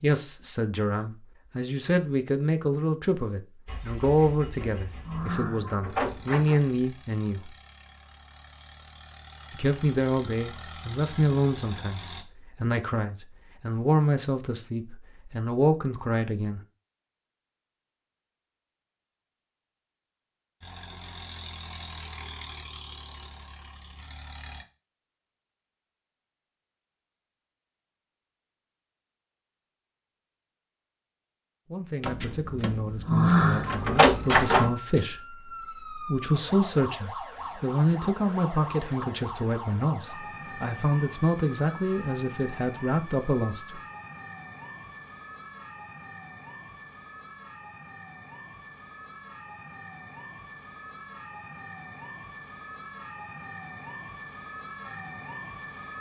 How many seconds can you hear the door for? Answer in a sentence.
You can hear the door for 5 seconds altogether.